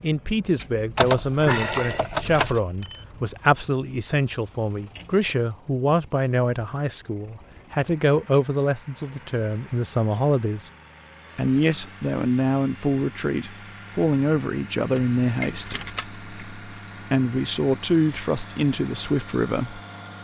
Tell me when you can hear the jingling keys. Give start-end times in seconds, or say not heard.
0.9-2.6, 14.9-16.5.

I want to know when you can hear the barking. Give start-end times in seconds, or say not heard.
not heard.